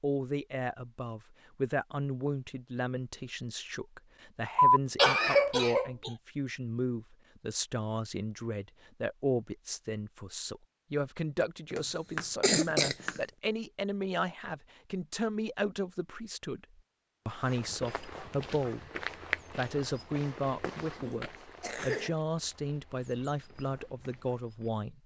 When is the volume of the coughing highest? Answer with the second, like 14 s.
5 s.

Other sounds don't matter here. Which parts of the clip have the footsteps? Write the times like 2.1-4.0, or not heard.
17.2-24.8.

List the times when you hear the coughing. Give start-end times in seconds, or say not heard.
4.5-6.1, 11.7-13.2, 21.0-22.1.